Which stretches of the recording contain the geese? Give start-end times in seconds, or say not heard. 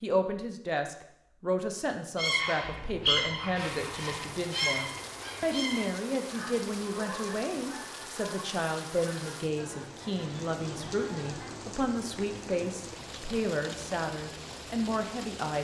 2.1-11.6.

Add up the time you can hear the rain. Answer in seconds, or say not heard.
12 s.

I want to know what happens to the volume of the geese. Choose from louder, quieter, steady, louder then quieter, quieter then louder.
quieter.